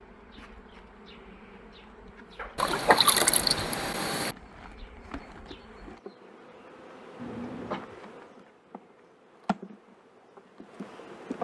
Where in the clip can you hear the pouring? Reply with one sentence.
The pouring can be heard from 2.5 to 4.3 s.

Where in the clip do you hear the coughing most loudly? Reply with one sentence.
The volume of the coughing peaks at 3 seconds.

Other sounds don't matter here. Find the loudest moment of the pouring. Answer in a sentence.
The loudest moment of the pouring is at 3 seconds.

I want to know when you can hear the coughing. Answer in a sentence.
You can hear the coughing from 2.4 to 3.0 s and from 7.2 to 7.8 s.